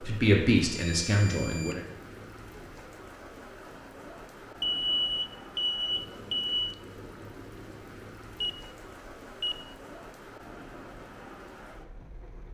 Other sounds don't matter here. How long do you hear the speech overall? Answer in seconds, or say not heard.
2 s.